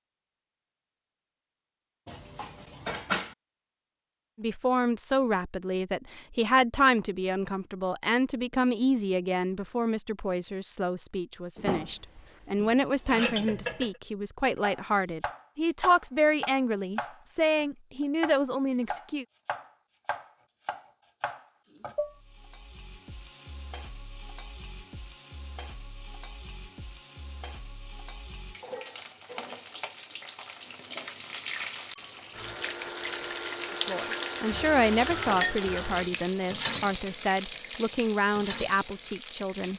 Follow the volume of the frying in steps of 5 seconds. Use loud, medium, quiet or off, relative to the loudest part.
off, off, off, off, quiet, quiet, loud, loud.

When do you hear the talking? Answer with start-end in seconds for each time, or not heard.
4.3-19.2, 33.9-39.7.